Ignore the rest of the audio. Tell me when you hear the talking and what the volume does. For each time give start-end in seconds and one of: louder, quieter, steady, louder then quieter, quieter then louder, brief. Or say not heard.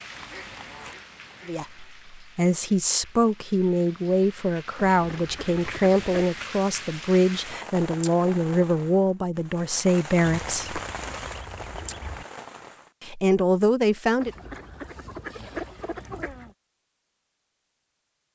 1.4-10.8 steady
13.0-14.3 brief.